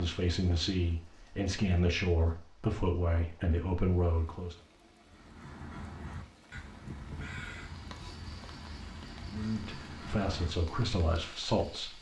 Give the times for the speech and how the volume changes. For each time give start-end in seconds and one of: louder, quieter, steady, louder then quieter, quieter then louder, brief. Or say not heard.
0.0-4.5 steady
9.2-11.9 brief.